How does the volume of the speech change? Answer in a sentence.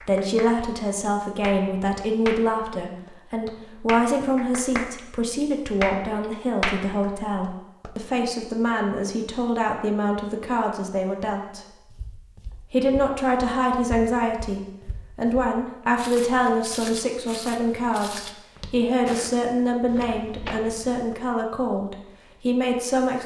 The loudness of the speech stays about the same.